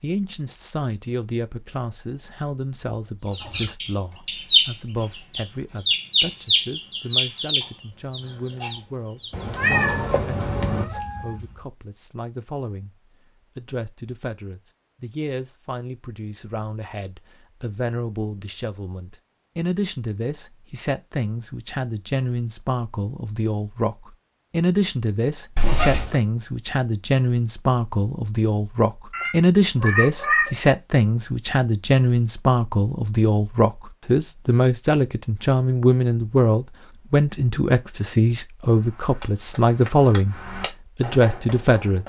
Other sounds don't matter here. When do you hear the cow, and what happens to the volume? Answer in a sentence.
The cow can't be heard in this clip.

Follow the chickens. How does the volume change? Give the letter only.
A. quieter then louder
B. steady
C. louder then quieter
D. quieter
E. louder
D.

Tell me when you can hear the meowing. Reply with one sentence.
You can hear the meowing from 9.3 to 10.8 s, from 25.6 to 26.1 s and from 29.1 to 30.7 s.